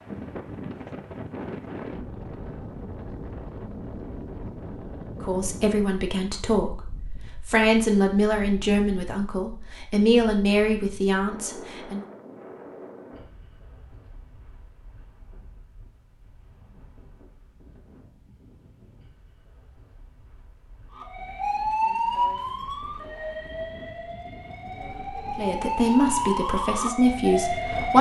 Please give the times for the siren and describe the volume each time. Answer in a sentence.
The siren can be heard from 20.9 to 27.9 s, getting quieter then louder.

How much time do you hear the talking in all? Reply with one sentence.
You can hear the talking for 9 seconds altogether.